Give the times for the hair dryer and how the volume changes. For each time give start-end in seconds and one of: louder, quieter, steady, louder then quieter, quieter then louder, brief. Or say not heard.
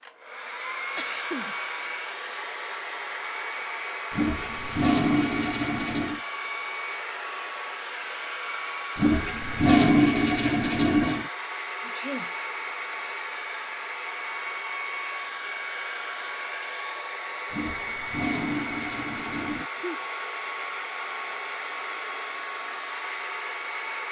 0.0-24.0 steady.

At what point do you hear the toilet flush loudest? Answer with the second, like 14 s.
10 s.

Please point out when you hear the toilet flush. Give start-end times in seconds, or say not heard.
4.1-6.2, 8.9-11.3, 17.5-19.6.